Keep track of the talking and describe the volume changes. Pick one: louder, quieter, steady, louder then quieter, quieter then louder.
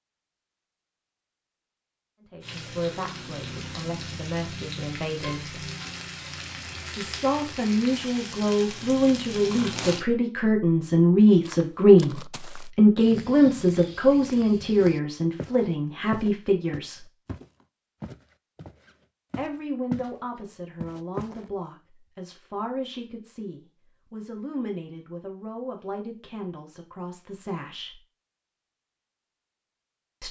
louder then quieter.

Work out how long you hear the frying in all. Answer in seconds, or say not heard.
8 s.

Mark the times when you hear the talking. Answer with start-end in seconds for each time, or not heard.
2.2-5.7, 7.0-17.1, 19.4-28.0.